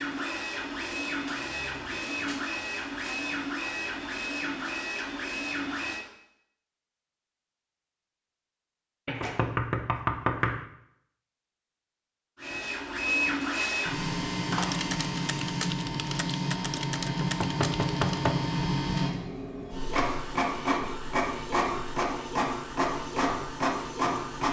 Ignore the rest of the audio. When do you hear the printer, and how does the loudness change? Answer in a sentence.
The printer can be heard from 0.0 to 6.0 s, at a steady volume; and from 12.3 to 24.4 s, at a steady volume.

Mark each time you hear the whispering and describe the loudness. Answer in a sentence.
You can't hear the whispering here.